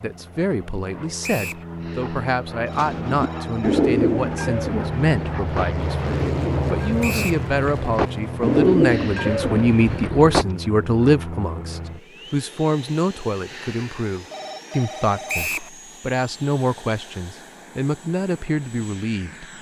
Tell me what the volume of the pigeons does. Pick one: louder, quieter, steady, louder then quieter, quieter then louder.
quieter then louder.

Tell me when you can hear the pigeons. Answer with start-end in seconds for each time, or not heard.
2.7-10.4.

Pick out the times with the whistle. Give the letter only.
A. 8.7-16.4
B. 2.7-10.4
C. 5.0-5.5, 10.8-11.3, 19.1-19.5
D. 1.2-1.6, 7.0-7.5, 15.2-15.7
D.